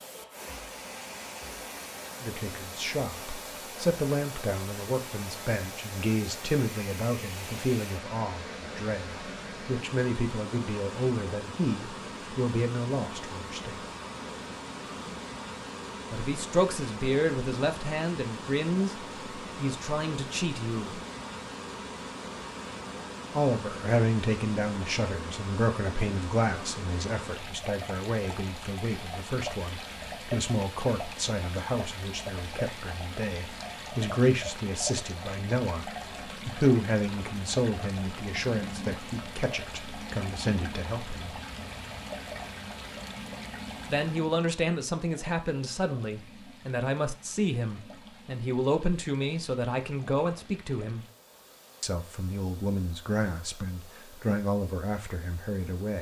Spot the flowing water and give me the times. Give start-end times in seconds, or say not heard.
0.0-55.9.